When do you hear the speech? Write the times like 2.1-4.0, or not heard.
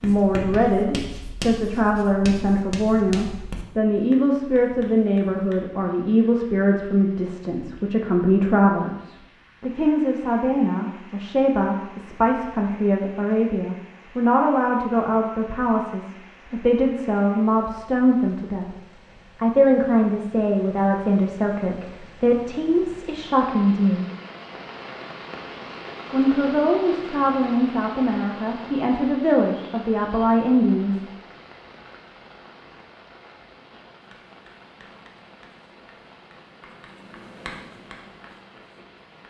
0.0-18.7, 19.4-24.1, 26.1-31.0.